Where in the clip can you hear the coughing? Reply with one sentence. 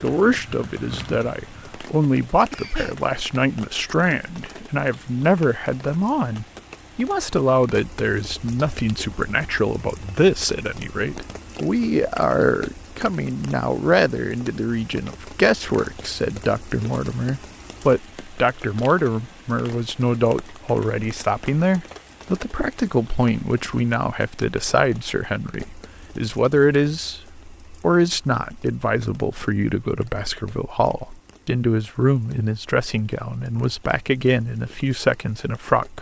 The coughing can be heard from 2.5 to 3.0 s.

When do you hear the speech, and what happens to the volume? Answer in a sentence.
The speech can be heard from 0.0 to 35.9 s, at a steady volume.